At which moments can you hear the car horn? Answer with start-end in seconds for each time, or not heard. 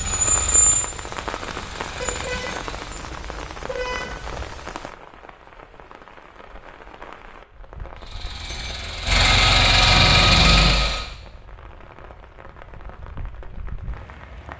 2.0-4.6, 9.9-10.8.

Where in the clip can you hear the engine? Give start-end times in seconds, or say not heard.
0.0-3.0, 8.0-11.1.